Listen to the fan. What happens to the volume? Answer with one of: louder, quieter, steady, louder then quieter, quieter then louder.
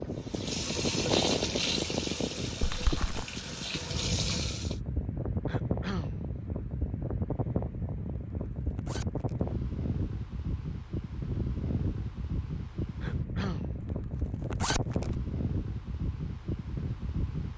steady.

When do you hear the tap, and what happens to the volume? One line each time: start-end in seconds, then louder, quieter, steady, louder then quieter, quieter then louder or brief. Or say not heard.
0.0-4.8 quieter then louder.